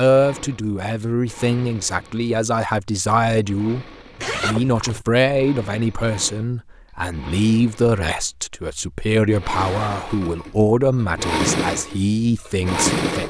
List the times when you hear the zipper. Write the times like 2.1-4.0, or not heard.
4.2-5.0, 9.4-10.2.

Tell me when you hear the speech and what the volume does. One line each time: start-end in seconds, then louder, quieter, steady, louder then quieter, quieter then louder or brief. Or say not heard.
0.0-13.2 steady.